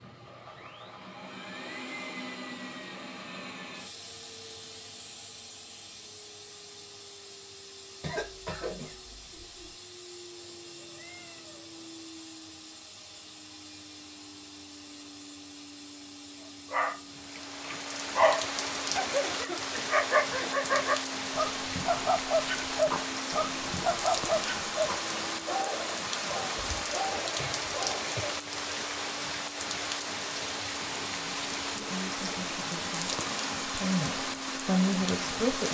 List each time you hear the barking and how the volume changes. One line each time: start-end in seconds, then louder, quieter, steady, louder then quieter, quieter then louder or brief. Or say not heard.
16.7-28.1 quieter.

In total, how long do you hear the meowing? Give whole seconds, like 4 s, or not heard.
2 s.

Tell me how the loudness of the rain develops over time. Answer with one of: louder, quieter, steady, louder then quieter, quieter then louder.
steady.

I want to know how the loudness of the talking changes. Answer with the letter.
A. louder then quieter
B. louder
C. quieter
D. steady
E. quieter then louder
E.